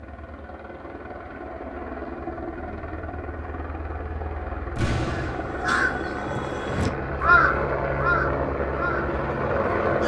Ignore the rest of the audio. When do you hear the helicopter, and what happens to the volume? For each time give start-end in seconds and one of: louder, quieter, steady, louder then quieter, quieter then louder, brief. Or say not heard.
0.0-10.0 louder.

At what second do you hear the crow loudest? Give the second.
7 s.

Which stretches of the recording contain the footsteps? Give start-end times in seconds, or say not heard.
not heard.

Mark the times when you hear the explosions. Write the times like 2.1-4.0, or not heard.
4.8-5.7.